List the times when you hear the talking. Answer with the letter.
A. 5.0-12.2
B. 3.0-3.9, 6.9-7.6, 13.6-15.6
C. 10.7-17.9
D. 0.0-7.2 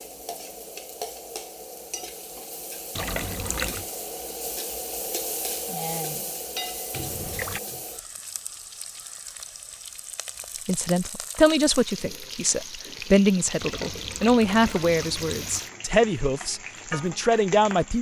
C.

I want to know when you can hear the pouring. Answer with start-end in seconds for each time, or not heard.
3.0-3.9, 6.9-7.6, 13.6-15.6.